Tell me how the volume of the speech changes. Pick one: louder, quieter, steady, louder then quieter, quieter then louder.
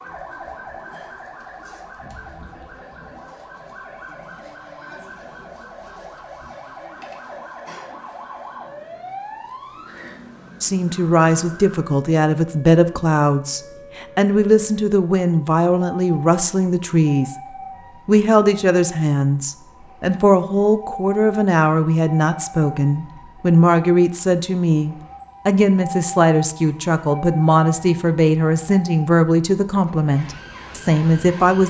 steady.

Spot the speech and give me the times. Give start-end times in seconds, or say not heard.
10.6-17.4, 18.1-31.6.